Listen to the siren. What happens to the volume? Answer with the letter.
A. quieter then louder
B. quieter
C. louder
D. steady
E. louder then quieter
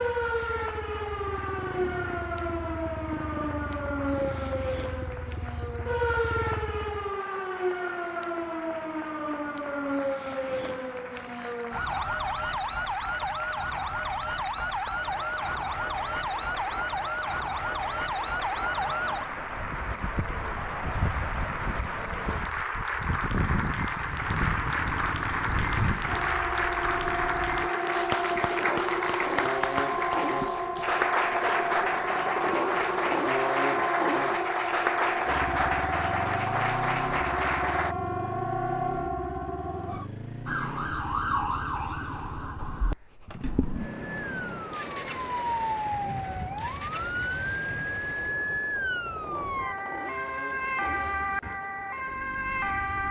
D.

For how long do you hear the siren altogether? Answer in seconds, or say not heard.
53 s.